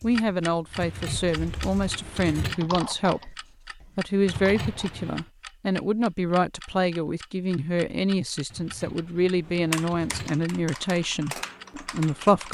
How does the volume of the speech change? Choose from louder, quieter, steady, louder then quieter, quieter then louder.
steady.